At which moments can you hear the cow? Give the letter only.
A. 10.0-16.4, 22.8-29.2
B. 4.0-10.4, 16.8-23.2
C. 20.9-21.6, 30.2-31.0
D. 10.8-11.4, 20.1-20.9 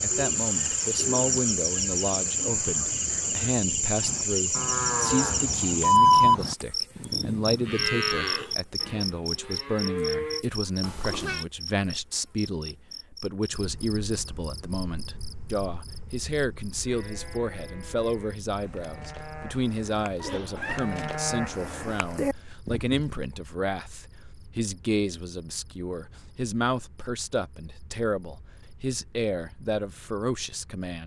B.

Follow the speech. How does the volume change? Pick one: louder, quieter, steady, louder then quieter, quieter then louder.
steady.